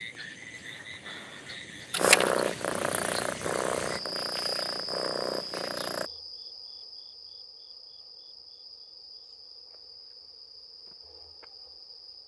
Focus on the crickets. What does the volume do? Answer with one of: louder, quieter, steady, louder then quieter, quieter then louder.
louder then quieter.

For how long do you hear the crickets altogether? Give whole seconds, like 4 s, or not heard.
12 s.